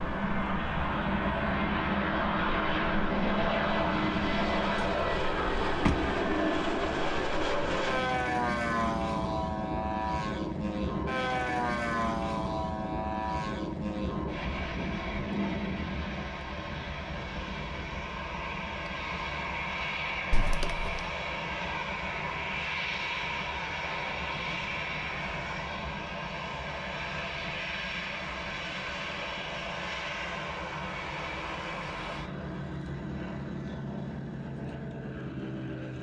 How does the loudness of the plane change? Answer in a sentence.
The loudness of the plane goes down.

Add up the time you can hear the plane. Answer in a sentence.
You can hear the plane for 36 seconds altogether.